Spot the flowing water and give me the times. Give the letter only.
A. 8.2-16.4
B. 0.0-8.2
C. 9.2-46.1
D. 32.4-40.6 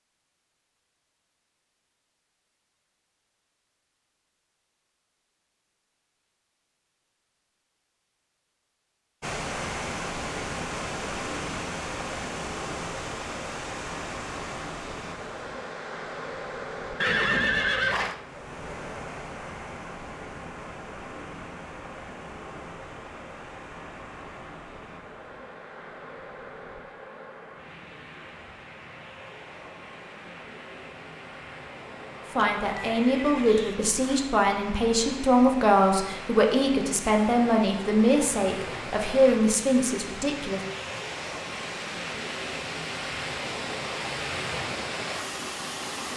C.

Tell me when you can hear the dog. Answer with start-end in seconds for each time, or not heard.
not heard.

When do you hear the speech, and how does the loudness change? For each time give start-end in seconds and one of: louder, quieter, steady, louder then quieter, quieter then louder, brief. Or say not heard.
32.4-40.6 steady.